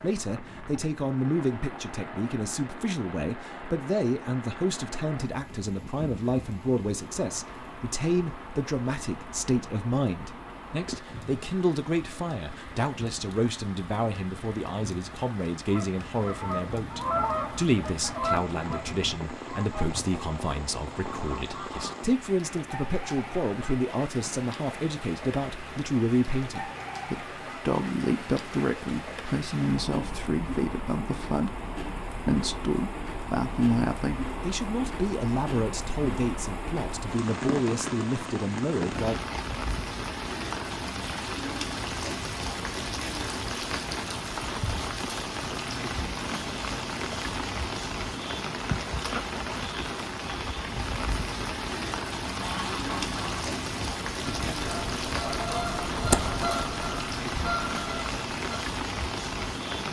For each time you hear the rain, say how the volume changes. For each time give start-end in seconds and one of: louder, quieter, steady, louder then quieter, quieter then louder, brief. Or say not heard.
0.0-59.8 louder.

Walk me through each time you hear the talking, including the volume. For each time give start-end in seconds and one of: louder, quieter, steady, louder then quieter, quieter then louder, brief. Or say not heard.
0.0-39.2 steady.